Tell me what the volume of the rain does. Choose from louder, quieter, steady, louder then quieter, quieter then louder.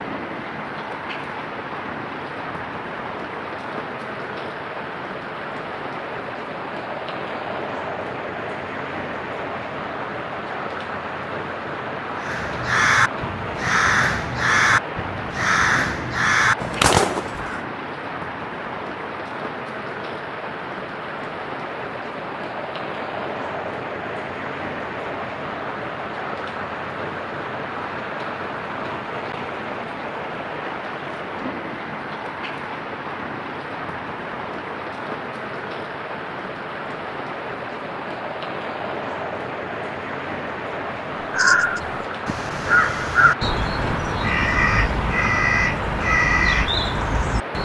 steady.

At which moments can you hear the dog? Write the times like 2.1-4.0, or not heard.
not heard.